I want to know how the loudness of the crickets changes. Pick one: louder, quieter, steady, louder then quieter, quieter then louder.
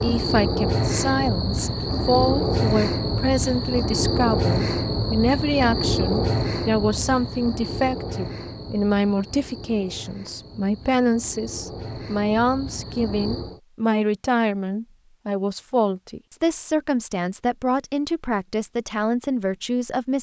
quieter.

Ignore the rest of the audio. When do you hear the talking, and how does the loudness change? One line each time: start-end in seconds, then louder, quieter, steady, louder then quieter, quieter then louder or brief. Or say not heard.
0.0-20.1 steady.